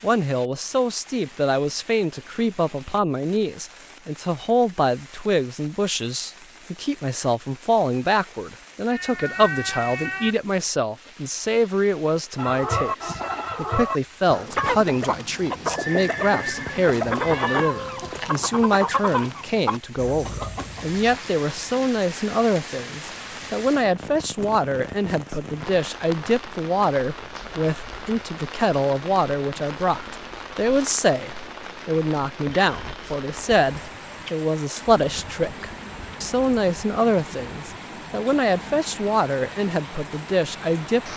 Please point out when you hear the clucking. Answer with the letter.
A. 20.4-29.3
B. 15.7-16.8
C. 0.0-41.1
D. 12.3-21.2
D.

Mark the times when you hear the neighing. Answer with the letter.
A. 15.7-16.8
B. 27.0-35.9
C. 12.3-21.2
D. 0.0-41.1
A.